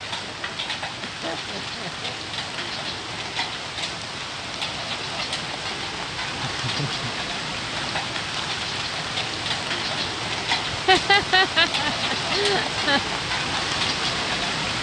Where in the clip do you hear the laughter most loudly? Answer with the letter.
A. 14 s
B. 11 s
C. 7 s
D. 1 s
B.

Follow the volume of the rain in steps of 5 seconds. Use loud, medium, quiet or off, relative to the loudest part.
medium, loud, loud.